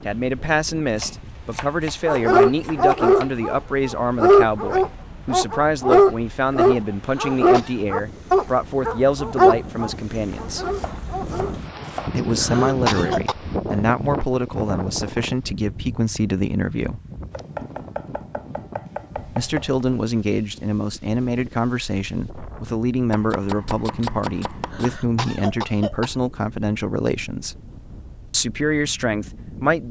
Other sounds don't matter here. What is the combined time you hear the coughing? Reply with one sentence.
The coughing can be heard for 3 seconds in total.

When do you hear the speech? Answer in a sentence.
You can hear the speech from 0.0 to 10.7 s, from 12.2 to 17.0 s, from 19.3 to 27.6 s and from 28.3 to 29.8 s.